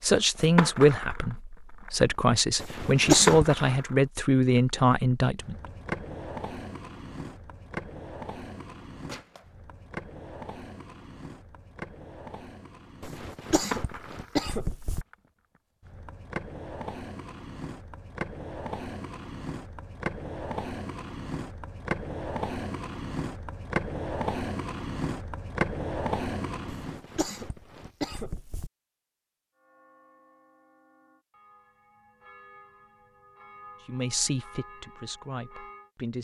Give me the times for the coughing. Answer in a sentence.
You can hear the coughing from 2.5 to 3.8 s, from 13.0 to 15.1 s and from 26.6 to 28.7 s.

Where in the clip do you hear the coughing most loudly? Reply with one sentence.
The loudest moment of the coughing is at 3 seconds.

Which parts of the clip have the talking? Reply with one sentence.
You can hear the talking from 0.0 to 5.5 s and from 33.9 to 36.1 s.